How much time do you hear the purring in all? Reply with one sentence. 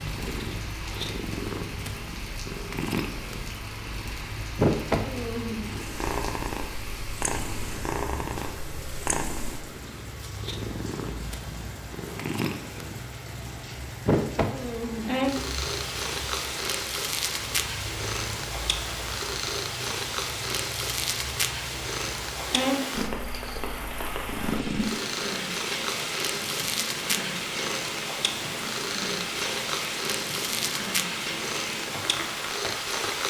You can hear the purring for 33 seconds altogether.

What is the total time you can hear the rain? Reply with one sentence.
The rain can be heard for 33 seconds in total.